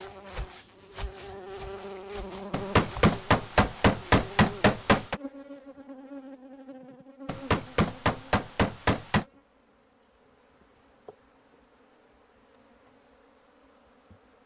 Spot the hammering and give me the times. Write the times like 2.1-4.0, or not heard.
2.5-5.2, 7.2-9.2.